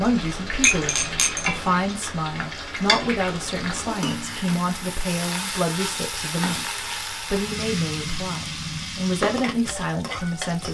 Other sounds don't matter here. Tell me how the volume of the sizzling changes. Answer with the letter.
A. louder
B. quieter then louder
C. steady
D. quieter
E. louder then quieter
C.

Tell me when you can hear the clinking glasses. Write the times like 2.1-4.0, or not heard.
0.6-1.8.